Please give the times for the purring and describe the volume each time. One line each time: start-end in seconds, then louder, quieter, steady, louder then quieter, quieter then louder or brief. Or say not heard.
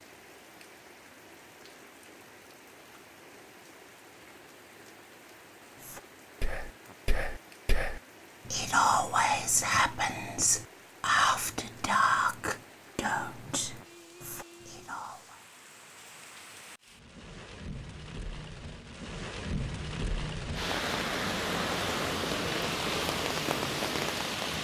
not heard.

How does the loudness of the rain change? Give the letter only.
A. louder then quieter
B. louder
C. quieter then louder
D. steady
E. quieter
B.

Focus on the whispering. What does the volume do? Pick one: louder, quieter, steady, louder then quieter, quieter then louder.
louder then quieter.